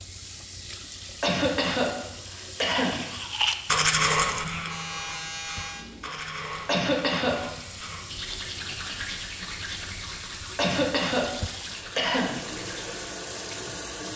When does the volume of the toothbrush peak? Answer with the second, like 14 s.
4 s.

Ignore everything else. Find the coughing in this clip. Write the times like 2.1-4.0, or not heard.
1.2-3.0, 6.7-7.3, 10.6-12.3.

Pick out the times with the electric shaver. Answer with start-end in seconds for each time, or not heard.
4.5-6.1.